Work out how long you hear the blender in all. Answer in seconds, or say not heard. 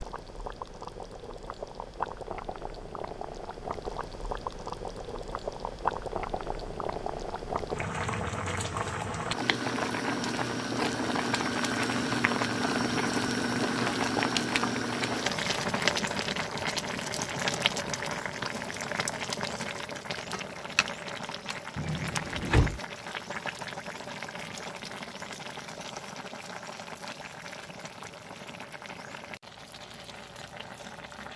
not heard.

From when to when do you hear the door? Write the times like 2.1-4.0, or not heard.
21.8-22.8.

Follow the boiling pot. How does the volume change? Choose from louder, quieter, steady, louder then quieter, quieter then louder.
louder then quieter.